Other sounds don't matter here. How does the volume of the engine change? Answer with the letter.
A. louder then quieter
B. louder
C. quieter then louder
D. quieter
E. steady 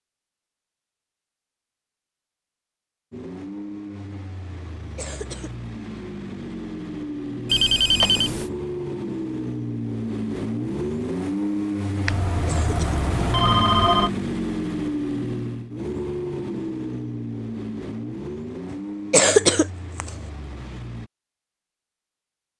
A.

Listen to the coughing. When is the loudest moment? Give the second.
19 s.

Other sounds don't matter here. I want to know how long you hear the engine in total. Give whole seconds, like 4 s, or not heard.
18 s.